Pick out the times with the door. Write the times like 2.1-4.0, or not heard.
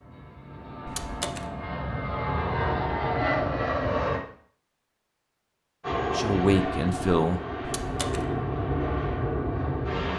0.8-1.5, 7.7-8.2.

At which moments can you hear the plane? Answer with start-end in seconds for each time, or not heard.
0.0-4.2, 5.8-10.1.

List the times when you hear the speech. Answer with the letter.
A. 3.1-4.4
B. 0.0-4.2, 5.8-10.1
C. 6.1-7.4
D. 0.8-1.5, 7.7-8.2
C.